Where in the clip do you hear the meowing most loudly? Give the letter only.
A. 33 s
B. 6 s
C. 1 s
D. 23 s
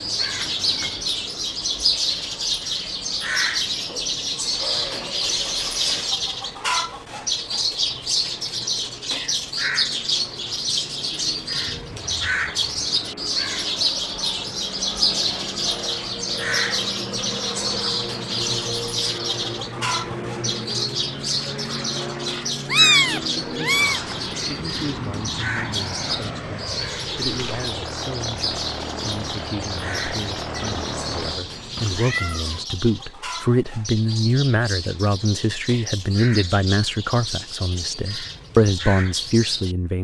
D.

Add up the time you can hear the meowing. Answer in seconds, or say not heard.
5 s.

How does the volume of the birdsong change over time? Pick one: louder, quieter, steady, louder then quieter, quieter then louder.
quieter.